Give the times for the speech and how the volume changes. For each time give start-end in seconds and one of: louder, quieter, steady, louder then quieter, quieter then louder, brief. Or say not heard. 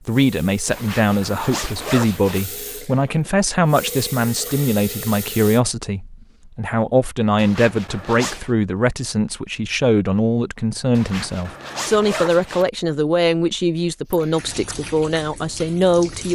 0.1-16.2 steady.